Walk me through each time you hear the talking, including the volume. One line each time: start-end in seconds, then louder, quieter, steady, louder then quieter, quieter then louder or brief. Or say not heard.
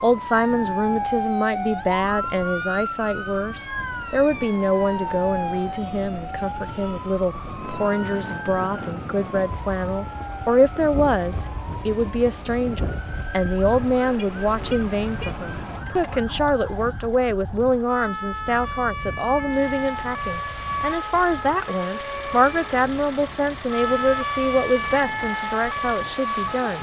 0.0-26.7 steady.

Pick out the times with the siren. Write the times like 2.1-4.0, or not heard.
0.0-26.7.